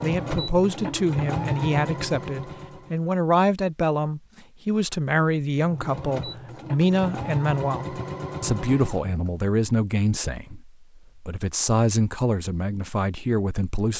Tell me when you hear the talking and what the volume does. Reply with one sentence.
You can hear the talking from 0.0 to 13.9 s, at a steady volume.